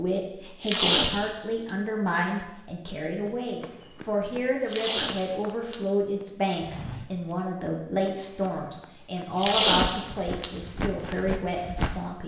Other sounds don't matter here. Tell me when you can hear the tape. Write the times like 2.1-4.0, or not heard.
0.6-1.3, 4.7-5.9, 9.3-10.5.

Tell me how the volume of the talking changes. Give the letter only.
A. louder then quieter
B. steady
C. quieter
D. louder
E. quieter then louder
B.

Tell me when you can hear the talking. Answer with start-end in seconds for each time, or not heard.
0.0-12.2.